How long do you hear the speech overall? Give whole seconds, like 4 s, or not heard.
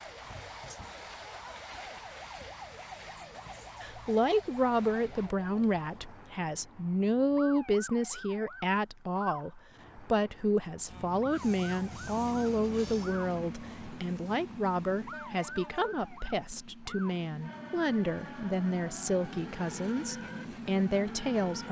18 s.